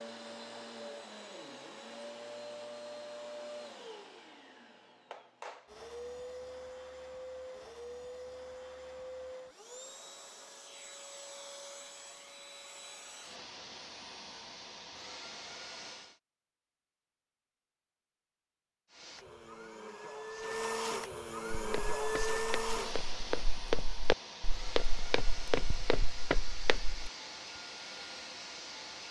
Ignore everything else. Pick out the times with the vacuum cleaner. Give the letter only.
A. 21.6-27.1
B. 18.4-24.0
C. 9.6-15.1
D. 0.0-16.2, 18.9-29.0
D.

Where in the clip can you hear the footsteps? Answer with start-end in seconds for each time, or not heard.
21.6-27.1.